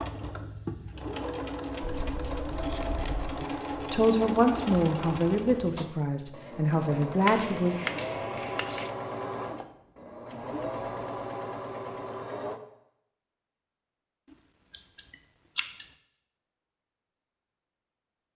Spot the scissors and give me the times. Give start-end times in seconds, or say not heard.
1.8-3.5, 7.2-8.9, 14.7-15.9.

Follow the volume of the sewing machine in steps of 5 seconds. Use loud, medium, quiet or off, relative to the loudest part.
loud, loud, loud, off.